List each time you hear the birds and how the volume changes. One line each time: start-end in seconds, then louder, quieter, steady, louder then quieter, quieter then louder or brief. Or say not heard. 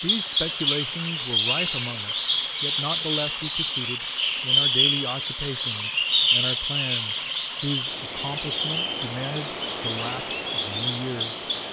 0.0-11.6 quieter.